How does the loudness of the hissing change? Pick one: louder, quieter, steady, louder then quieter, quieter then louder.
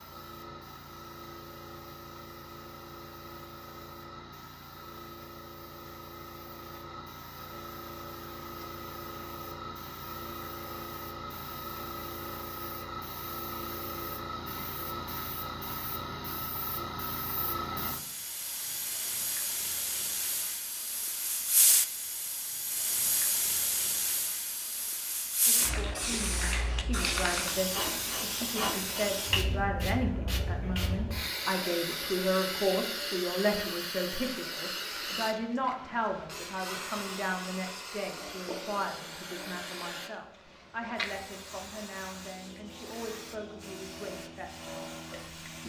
louder then quieter.